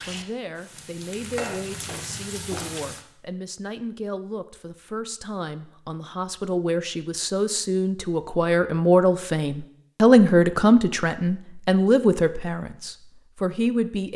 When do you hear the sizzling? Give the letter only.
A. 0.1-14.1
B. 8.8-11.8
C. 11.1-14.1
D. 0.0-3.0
D.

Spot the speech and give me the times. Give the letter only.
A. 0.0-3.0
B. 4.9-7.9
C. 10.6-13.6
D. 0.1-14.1
D.